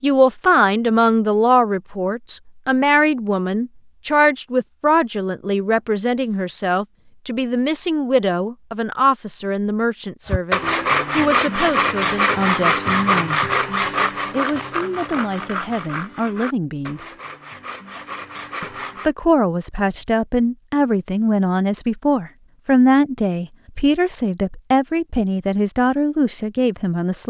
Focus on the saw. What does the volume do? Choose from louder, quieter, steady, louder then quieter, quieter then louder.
quieter.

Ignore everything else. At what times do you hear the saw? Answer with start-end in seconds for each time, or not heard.
10.2-19.1.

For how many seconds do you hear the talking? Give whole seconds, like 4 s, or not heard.
25 s.